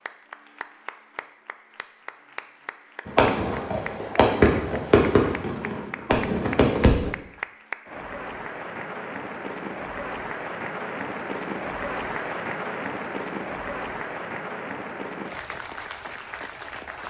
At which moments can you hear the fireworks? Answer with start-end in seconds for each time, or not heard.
3.0-7.2.